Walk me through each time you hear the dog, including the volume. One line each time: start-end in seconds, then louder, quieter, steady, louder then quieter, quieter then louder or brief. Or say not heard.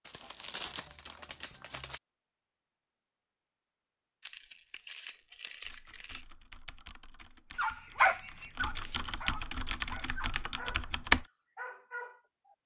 7.5-12.6 quieter.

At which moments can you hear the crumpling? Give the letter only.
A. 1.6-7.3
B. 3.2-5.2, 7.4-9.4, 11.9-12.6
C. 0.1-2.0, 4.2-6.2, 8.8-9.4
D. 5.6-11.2
C.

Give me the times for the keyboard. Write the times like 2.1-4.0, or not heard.
5.6-11.2.